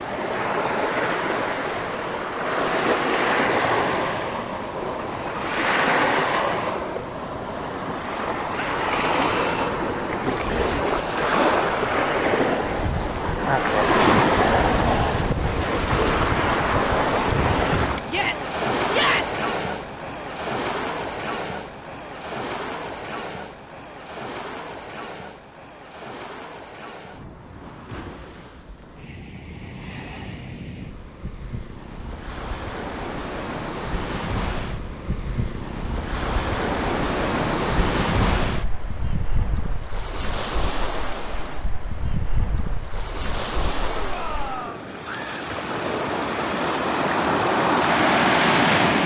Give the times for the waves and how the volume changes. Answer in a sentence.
You can hear the waves from 0.0 to 49.0 s, getting quieter then louder.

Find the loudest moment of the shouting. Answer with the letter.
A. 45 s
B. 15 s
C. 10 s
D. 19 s
D.